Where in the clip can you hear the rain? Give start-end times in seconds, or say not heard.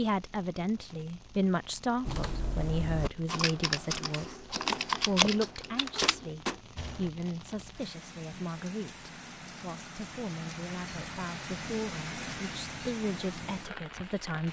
0.0-14.4.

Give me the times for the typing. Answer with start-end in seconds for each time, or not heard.
2.0-7.1.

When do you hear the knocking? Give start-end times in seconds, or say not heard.
6.0-6.6.